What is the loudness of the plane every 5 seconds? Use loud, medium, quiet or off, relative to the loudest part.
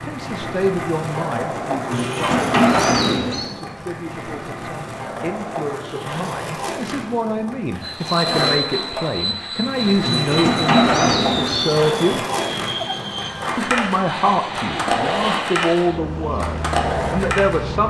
off, loud, loud, loud.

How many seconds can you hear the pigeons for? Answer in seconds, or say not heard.
3 s.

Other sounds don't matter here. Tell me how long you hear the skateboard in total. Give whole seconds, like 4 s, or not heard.
18 s.